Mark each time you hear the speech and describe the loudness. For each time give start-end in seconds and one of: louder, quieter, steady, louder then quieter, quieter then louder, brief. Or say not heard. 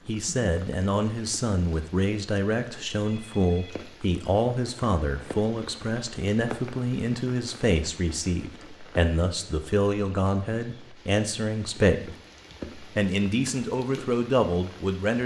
0.1-12.2 steady
12.8-15.2 brief.